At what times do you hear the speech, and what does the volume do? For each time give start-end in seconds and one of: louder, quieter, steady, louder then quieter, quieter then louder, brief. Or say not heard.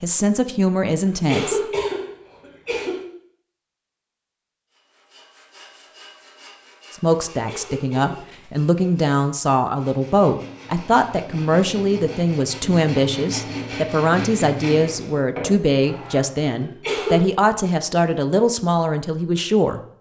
0.0-1.6 brief
6.9-19.9 steady.